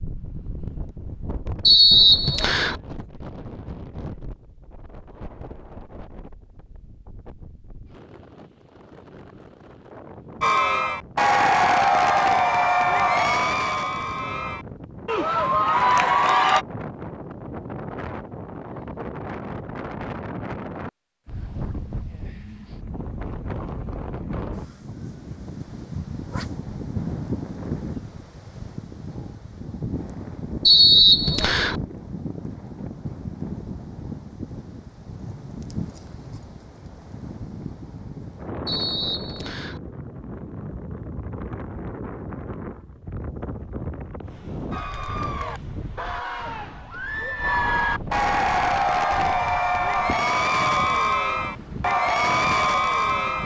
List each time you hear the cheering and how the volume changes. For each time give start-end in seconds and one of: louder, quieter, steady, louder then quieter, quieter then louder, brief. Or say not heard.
10.4-16.6 quieter then louder
44.7-53.4 louder.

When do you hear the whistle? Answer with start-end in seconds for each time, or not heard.
1.6-2.8, 30.6-31.8, 38.6-39.8.